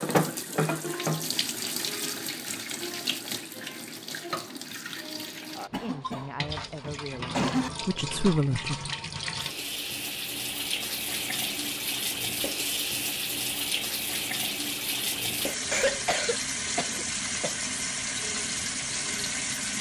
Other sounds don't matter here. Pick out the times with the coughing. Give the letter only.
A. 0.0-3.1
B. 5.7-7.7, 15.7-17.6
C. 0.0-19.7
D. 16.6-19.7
B.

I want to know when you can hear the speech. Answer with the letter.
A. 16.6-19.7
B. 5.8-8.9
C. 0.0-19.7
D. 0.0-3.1
B.